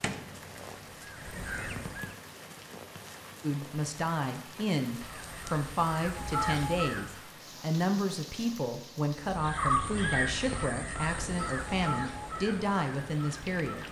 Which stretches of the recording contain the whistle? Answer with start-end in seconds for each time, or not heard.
not heard.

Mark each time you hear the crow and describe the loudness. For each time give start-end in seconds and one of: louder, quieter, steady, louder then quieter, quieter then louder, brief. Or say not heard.
0.0-2.1 brief
5.0-7.2 brief
9.2-13.8 quieter.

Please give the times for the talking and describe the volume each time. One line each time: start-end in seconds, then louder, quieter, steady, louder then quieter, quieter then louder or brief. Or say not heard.
3.4-13.8 steady.